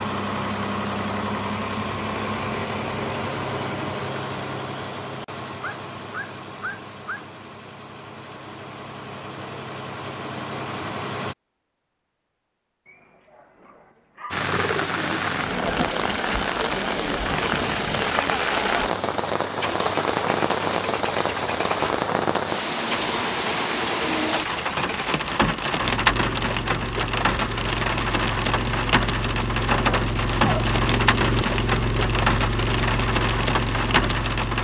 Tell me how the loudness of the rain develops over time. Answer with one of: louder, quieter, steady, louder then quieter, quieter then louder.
steady.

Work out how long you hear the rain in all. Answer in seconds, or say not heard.
20 s.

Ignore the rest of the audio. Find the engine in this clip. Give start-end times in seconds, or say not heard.
0.0-11.3, 17.4-34.5.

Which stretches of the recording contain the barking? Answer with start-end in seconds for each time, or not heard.
5.6-7.2, 12.8-14.4, 29.9-30.6.